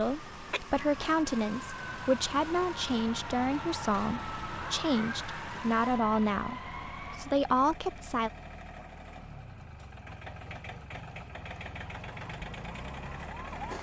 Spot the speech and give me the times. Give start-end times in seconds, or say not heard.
0.0-8.3.